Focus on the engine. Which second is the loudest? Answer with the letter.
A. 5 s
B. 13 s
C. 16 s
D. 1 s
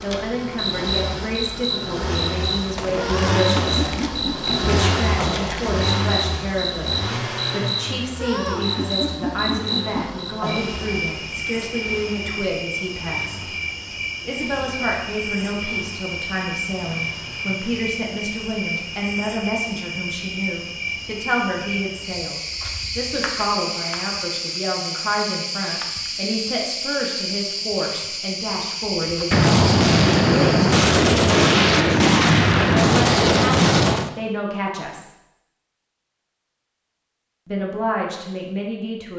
A.